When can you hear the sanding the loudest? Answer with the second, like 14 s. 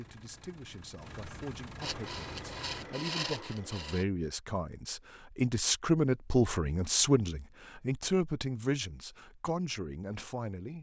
3 s.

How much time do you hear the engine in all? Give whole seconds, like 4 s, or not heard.
3 s.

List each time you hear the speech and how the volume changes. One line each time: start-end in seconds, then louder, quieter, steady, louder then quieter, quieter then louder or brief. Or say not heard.
0.0-10.7 louder then quieter.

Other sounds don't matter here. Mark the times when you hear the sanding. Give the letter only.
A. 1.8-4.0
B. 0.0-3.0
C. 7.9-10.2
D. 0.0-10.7
A.